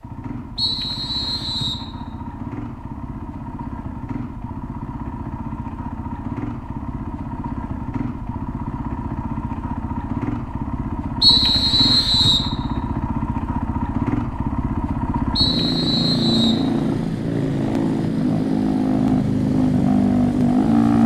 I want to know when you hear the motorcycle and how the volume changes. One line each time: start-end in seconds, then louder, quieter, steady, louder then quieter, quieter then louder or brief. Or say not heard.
0.0-21.0 louder.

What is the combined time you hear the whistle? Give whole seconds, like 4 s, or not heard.
4 s.